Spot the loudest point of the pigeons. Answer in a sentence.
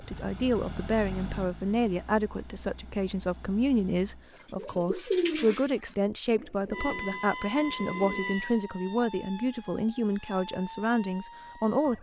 The loudest moment of the pigeons is at 5 seconds.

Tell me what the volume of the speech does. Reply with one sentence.
The volume of the speech stays about the same.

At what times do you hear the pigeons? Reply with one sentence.
You can hear the pigeons from 4.5 to 8.3 s.